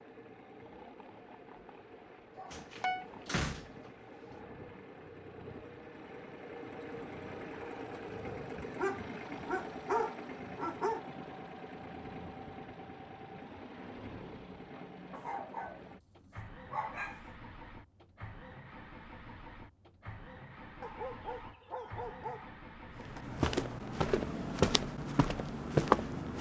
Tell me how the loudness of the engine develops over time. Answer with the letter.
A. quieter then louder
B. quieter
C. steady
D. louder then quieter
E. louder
D.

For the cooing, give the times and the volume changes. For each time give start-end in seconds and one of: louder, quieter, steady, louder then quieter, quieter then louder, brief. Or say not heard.
not heard.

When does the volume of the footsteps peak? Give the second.
26 s.